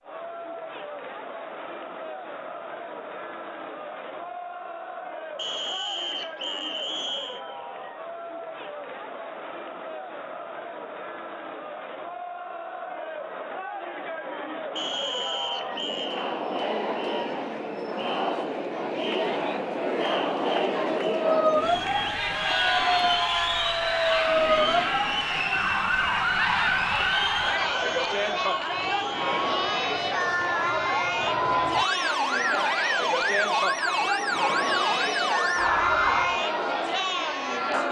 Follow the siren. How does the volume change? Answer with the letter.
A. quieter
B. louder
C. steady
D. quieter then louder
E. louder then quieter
D.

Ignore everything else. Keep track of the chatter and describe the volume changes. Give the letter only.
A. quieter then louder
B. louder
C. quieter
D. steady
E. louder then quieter
B.